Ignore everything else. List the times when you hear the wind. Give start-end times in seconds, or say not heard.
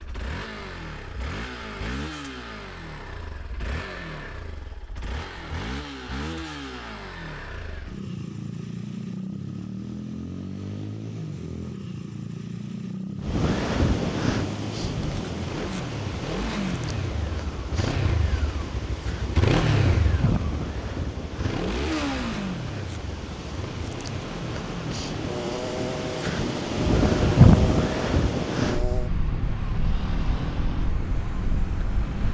13.2-32.2.